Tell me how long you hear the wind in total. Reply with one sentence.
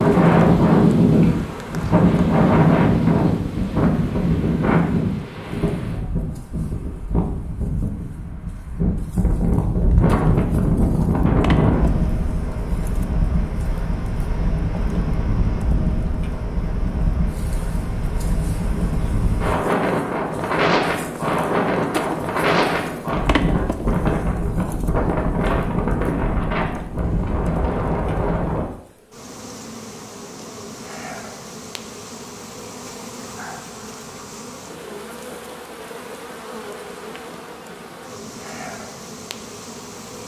You can hear the wind for 29 seconds altogether.